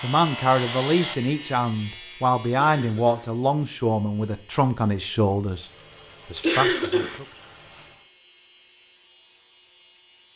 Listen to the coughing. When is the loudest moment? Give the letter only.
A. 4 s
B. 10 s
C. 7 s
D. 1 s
C.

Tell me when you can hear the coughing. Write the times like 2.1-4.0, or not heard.
2.5-3.4, 6.4-7.2.